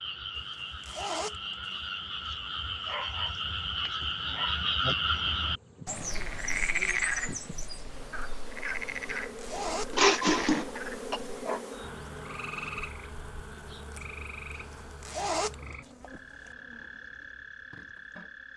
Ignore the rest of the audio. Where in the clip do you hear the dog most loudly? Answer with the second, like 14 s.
10 s.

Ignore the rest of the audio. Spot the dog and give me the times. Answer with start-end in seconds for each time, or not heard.
2.9-4.5, 9.9-11.6.